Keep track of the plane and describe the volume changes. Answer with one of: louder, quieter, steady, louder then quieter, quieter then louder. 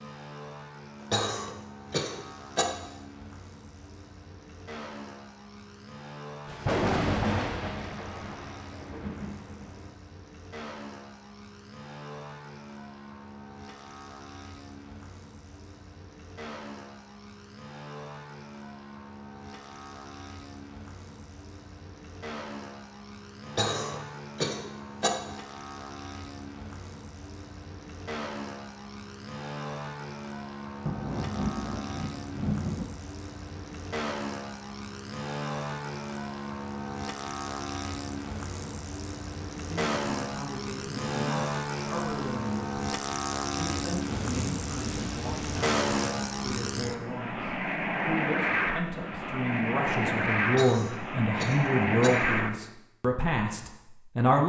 louder.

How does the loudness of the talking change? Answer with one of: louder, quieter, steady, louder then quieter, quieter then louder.
louder.